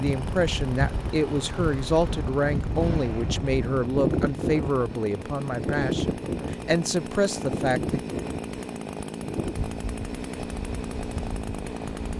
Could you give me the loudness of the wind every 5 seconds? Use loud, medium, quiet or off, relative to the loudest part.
loud, loud, medium.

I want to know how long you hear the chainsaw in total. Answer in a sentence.
You can hear the chainsaw for 12 seconds altogether.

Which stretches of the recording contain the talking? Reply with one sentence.
The talking can be heard from 0.0 to 8.0 s.